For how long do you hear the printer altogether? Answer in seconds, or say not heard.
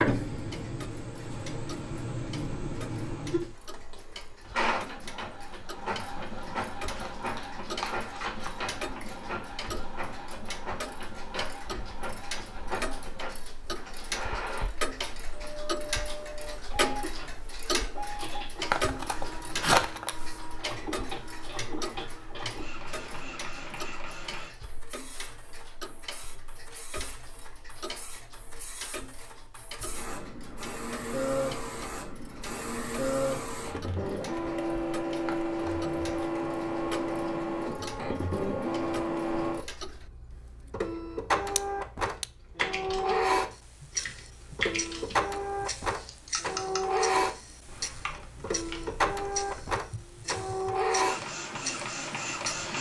53 s.